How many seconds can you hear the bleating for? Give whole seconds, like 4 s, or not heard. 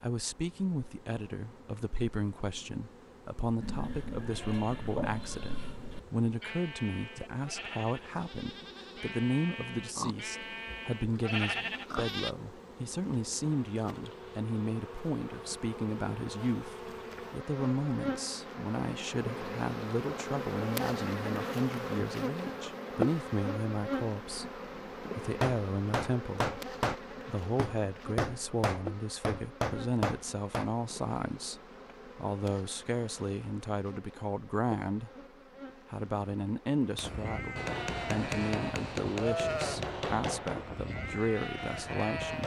14 s.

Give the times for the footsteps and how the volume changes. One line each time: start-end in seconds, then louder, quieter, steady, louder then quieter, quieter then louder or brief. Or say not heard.
not heard.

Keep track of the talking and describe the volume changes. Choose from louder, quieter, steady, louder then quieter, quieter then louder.
steady.